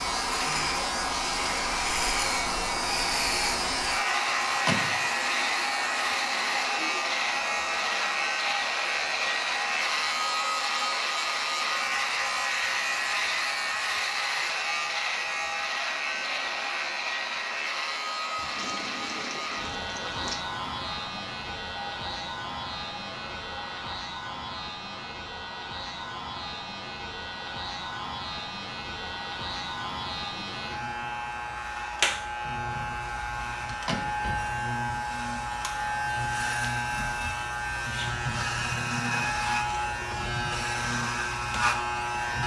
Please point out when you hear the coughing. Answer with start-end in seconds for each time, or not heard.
not heard.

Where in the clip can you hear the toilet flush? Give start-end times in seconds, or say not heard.
18.4-20.4.